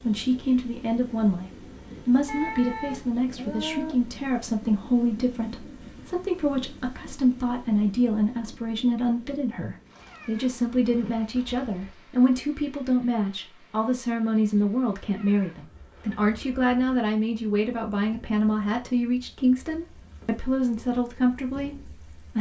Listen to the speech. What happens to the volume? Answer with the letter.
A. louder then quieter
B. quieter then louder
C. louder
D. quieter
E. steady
E.